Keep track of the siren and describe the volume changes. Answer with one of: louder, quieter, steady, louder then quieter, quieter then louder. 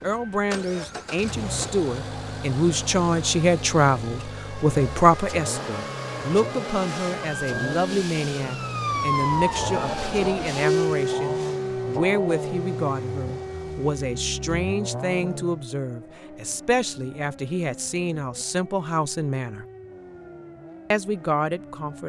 louder then quieter.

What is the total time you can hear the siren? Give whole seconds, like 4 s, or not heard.
22 s.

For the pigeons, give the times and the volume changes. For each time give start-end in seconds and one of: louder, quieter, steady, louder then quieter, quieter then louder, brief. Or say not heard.
not heard.